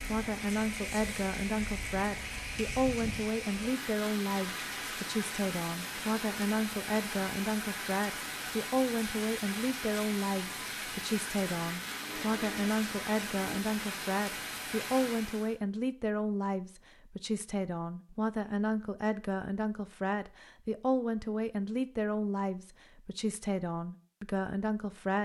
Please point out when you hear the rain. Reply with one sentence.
The rain can be heard from 0.0 to 15.6 s.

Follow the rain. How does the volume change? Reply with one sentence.
The loudness of the rain stays about the same.